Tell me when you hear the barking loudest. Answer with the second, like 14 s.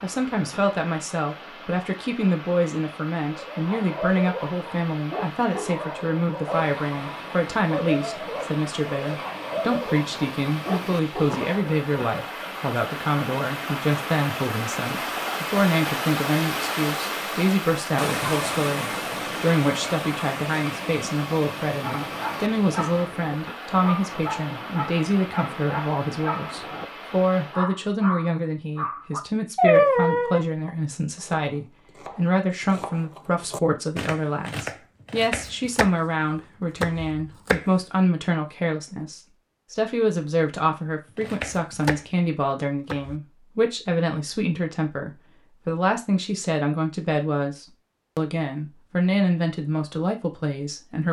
30 s.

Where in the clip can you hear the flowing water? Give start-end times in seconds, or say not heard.
0.0-27.7.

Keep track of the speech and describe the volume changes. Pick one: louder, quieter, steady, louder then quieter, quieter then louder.
steady.